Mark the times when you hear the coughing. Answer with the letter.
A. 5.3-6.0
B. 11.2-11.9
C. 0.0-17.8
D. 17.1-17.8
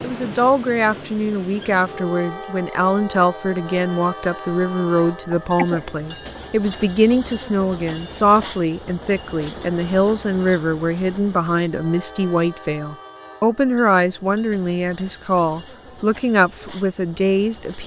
A.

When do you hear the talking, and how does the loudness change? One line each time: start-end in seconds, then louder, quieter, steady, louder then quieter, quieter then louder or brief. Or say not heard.
0.0-17.8 steady.